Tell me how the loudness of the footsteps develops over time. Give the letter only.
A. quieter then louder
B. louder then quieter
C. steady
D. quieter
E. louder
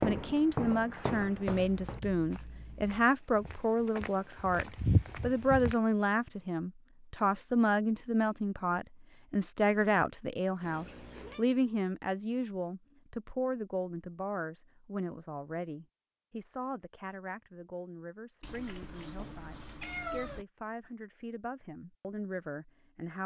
A.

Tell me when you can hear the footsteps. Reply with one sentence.
You can hear the footsteps from 0.0 to 5.8 s.